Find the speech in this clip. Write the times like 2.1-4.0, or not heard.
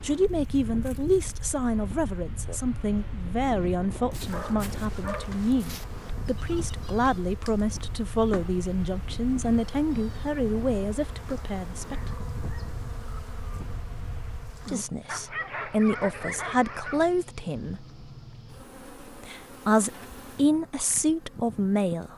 0.0-12.2, 14.7-17.9, 19.0-22.1.